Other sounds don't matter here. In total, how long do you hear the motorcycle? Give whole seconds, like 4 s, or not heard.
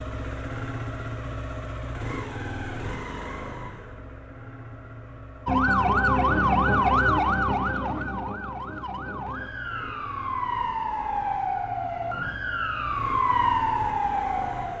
11 s.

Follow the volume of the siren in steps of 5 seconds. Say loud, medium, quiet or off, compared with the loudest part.
off, loud, loud.